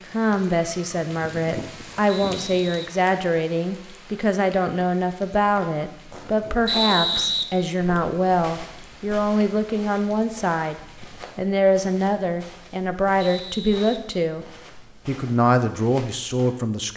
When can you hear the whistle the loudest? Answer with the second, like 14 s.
7 s.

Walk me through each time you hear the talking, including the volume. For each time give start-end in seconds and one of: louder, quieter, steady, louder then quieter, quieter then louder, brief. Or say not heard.
0.1-14.4 steady
15.1-16.9 brief.